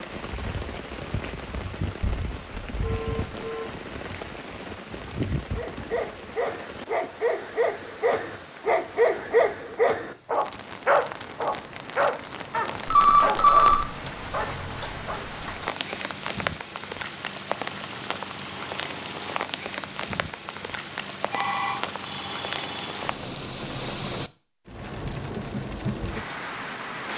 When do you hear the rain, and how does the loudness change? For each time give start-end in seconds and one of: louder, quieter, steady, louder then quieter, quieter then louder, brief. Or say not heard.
0.0-27.1 quieter then louder.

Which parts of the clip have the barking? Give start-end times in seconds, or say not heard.
5.5-15.2.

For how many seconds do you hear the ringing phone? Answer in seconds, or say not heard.
4 s.